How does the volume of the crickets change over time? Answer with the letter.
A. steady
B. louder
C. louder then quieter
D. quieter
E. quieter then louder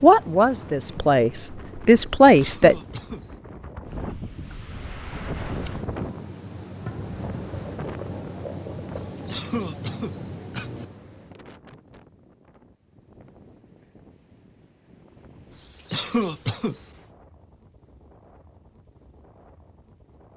E.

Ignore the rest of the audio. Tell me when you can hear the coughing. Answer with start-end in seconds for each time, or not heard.
2.2-3.3, 8.9-10.8, 15.5-16.8.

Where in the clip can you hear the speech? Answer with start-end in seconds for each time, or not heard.
0.0-2.8.